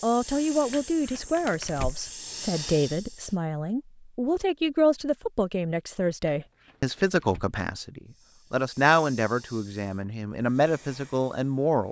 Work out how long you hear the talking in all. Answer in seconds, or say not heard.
12 s.